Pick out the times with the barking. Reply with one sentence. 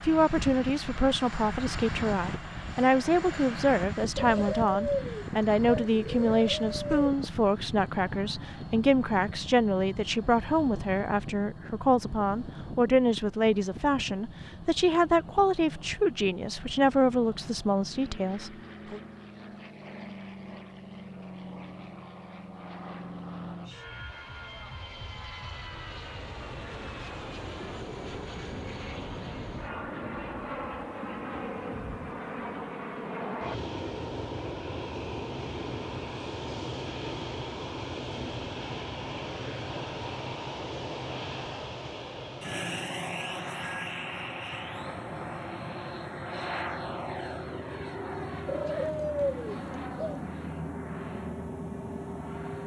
You can't hear the barking here.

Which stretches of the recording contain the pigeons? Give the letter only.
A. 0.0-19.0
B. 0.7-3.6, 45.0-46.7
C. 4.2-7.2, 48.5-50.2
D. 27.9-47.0
C.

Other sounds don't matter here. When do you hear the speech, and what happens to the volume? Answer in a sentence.
The speech can be heard from 0.0 to 19.0 s, at a steady volume.